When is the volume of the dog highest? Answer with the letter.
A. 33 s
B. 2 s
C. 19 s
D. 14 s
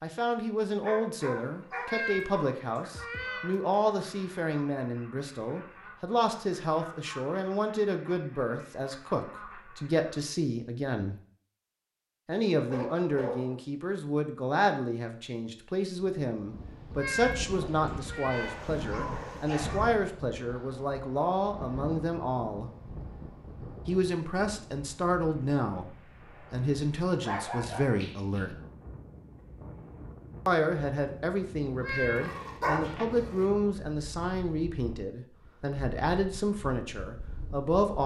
A.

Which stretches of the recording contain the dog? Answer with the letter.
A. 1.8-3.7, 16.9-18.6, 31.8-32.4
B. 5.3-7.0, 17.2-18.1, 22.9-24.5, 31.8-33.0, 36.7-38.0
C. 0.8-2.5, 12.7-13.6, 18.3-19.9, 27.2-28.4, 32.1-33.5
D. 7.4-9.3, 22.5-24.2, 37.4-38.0
C.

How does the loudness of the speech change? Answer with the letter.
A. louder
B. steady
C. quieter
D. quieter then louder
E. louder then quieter
B.